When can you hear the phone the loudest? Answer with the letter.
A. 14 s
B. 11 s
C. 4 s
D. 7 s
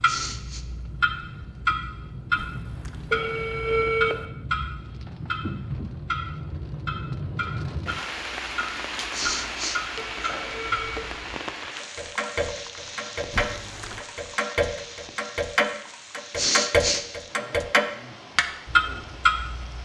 C.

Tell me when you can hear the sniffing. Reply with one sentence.
You can hear the sniffing from 0.1 to 0.7 s, from 9.1 to 10.7 s and from 16.4 to 17.1 s.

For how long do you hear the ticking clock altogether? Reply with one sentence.
You can hear the ticking clock for 20 seconds altogether.